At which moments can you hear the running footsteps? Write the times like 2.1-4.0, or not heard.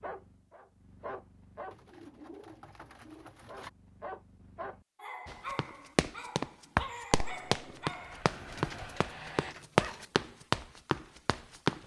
5.2-11.8.